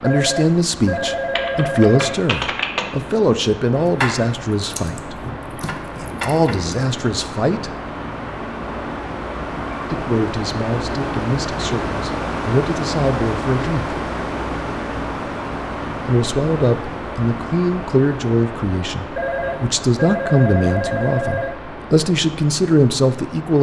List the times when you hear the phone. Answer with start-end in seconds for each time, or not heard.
0.0-2.2, 19.1-21.6.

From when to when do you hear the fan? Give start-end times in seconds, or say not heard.
0.0-23.5.